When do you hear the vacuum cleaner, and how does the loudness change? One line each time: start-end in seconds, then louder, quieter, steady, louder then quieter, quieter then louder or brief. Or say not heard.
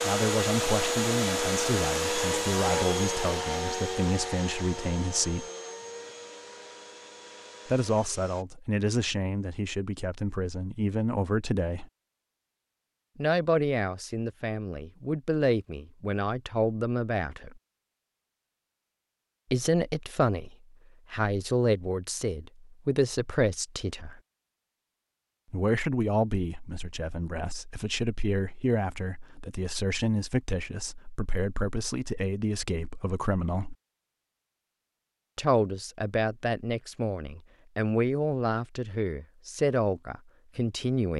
0.0-8.4 quieter.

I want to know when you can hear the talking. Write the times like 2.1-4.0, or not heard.
0.0-5.5, 7.7-11.8, 13.2-17.6, 19.5-24.2, 25.5-33.8, 35.4-41.1.